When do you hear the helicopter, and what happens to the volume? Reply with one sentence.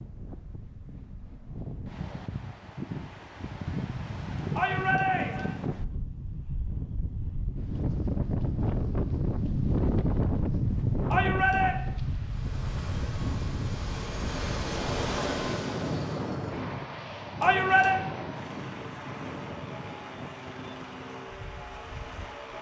The helicopter can be heard from 12.2 to 22.5 s, getting louder then quieter.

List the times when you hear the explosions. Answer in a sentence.
You can't hear the explosions here.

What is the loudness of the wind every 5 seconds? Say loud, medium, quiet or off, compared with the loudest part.
medium, loud, loud, medium, quiet.